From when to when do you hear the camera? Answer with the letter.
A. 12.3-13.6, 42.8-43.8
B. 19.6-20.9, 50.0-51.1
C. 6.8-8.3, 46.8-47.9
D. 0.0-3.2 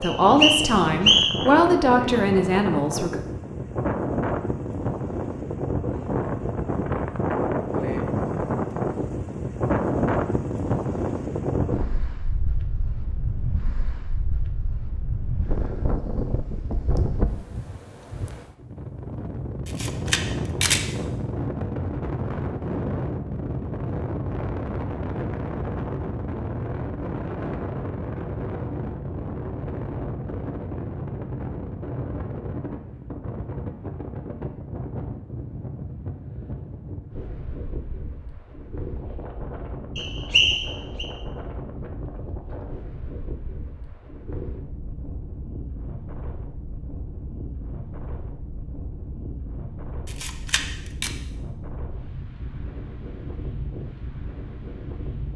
B.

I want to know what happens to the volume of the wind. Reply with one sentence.
The volume of the wind goes down.